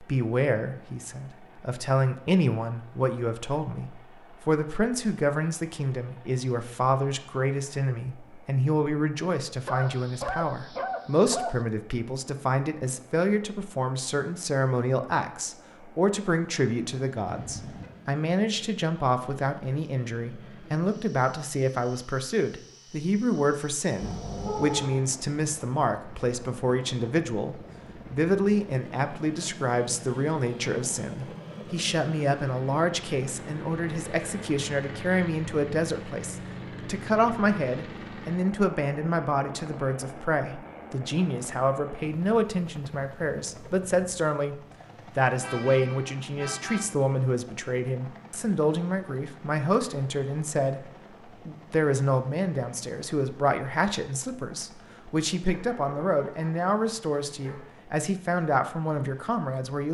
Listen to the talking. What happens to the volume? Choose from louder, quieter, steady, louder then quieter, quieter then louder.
steady.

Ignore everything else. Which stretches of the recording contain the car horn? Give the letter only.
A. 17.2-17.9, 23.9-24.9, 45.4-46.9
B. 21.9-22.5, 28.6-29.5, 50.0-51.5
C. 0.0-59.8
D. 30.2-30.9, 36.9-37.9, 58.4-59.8
A.